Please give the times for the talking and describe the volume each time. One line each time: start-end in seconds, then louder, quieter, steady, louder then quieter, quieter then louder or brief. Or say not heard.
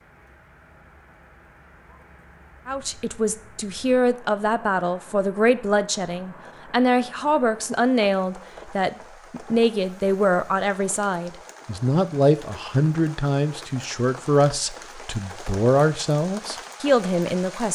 2.6-17.7 steady.